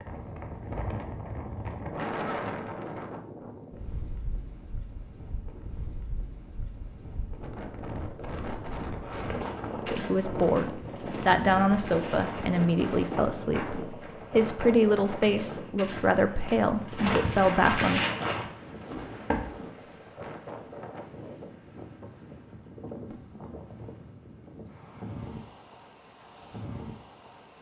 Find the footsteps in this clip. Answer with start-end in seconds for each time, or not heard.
9.2-19.5.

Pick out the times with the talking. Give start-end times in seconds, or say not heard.
9.9-18.0.